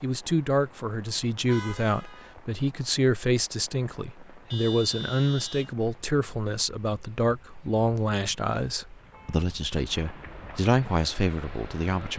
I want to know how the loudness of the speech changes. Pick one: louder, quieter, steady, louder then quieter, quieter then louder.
steady.